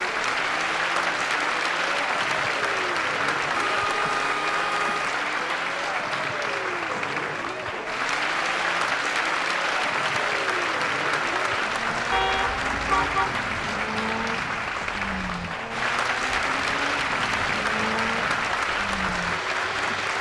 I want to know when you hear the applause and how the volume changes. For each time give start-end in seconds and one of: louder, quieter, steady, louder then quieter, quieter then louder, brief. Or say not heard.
0.0-20.1 steady.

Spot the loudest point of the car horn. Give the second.
13 s.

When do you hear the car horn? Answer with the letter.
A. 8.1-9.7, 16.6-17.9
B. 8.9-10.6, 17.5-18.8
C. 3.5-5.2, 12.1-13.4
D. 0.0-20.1
C.